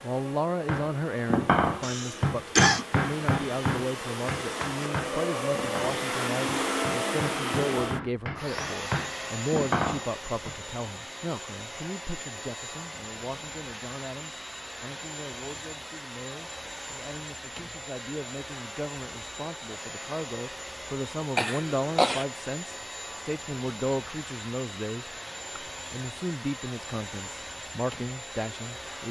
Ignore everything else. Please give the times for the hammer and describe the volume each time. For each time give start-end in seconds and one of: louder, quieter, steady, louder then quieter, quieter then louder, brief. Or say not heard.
0.7-10.6 quieter then louder.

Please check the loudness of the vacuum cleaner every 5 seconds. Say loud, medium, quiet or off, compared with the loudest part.
medium, loud, medium, medium, medium, medium.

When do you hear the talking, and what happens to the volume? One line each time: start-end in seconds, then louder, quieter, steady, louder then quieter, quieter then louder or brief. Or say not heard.
0.0-29.0 quieter then louder.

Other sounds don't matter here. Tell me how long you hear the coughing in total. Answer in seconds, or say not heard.
2 s.